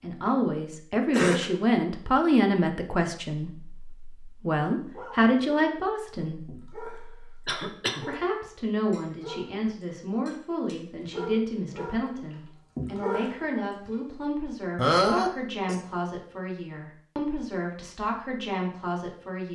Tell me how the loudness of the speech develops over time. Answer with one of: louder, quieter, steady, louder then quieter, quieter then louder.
quieter.